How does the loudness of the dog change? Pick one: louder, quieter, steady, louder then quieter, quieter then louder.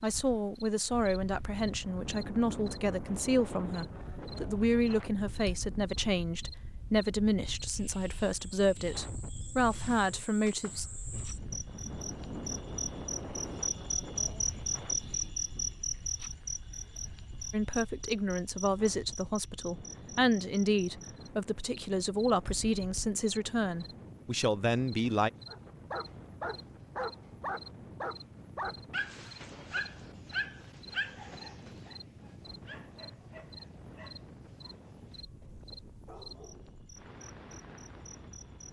quieter.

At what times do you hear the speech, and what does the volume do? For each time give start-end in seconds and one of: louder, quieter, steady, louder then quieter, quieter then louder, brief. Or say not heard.
0.0-10.8 steady
17.5-25.3 steady.